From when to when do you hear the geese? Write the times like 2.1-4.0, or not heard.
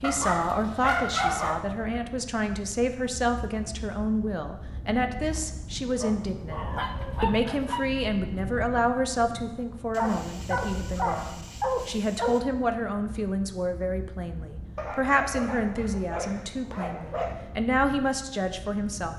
not heard.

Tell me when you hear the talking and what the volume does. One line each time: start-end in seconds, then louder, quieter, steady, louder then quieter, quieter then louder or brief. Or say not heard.
0.0-19.1 steady.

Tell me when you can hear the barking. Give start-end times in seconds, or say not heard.
0.0-1.6, 6.0-7.9, 9.9-12.4, 14.8-17.6.